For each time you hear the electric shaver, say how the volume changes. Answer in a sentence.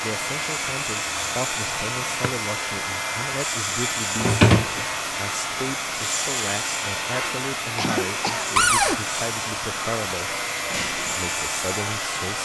The electric shaver can be heard from 0.0 to 12.4 s, at a steady volume.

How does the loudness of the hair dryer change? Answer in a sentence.
The loudness of the hair dryer stays about the same.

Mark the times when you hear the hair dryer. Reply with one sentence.
You can hear the hair dryer from 0.0 to 12.4 s.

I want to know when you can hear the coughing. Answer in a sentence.
You can hear the coughing from 7.1 to 8.6 s.